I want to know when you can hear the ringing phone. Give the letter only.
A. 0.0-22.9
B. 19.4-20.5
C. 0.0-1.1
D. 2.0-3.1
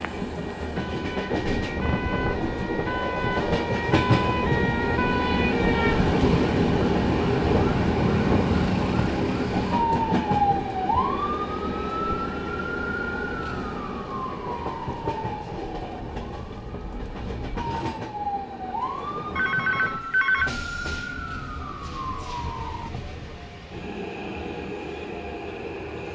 B.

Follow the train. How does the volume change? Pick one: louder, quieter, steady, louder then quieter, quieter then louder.
quieter.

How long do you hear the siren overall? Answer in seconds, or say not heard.
23 s.